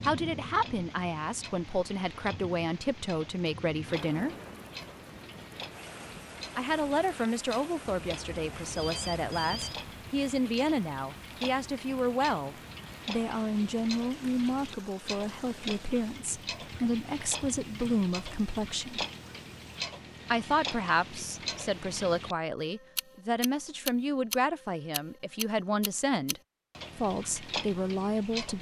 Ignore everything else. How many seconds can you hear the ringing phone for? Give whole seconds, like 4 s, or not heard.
2 s.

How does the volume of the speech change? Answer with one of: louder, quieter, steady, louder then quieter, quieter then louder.
steady.